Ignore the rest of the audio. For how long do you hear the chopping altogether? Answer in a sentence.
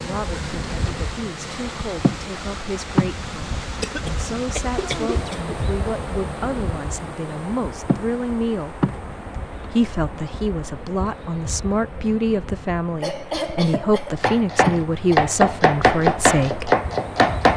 You can hear the chopping for 3 seconds altogether.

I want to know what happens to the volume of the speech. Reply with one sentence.
The volume of the speech goes up.